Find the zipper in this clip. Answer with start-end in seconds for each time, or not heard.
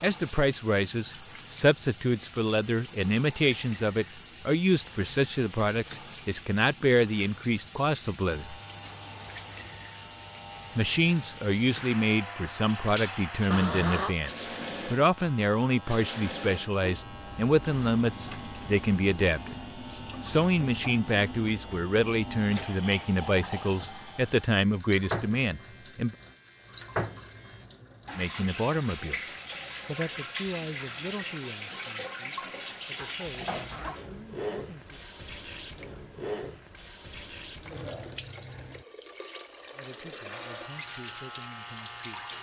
13.5-14.2, 33.2-34.0.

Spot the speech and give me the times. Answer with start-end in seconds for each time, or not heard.
0.0-8.6, 10.8-19.6, 20.2-26.1, 28.1-35.0, 39.8-42.2.